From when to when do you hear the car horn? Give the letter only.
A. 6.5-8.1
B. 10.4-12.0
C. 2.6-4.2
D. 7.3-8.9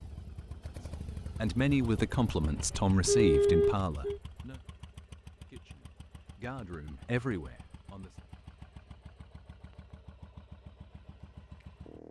C.